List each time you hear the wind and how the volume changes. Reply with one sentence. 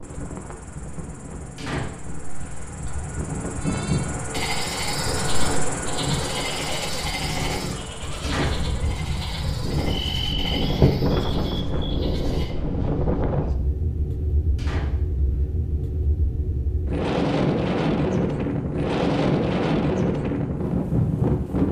The wind can be heard from 0.0 to 21.6 s, getting louder.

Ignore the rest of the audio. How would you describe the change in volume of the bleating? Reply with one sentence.
The volume of the bleating goes down.